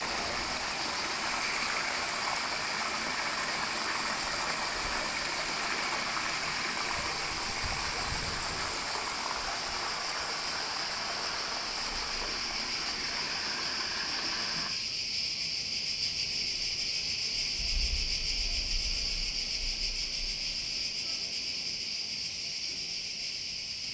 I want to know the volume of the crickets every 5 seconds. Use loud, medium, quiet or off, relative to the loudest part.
medium, medium, loud, loud, loud.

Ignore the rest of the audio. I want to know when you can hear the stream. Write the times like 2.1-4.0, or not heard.
0.0-14.7.